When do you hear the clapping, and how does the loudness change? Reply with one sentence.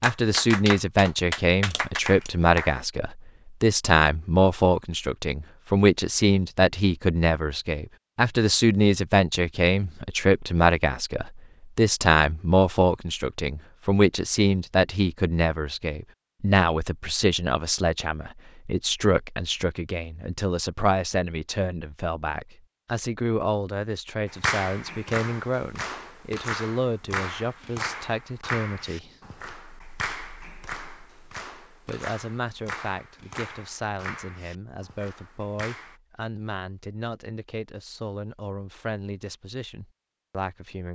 The clapping can be heard briefly from 0.0 to 2.8 s; and from 24.2 to 36.0 s, getting quieter.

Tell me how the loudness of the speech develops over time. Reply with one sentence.
The volume of the speech goes down.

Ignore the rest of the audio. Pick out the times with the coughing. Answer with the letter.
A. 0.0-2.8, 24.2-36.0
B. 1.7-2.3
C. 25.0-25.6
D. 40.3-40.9
B.